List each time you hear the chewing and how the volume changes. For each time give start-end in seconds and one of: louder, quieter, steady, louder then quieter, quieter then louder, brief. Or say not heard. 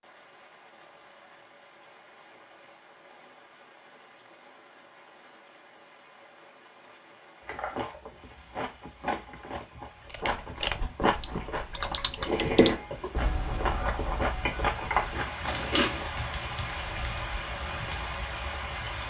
7.5-16.1 louder.